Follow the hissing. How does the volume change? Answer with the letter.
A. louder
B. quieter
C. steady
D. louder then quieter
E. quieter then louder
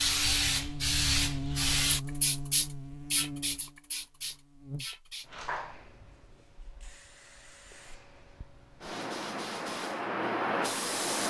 E.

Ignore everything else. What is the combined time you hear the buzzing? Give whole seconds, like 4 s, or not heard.
6 s.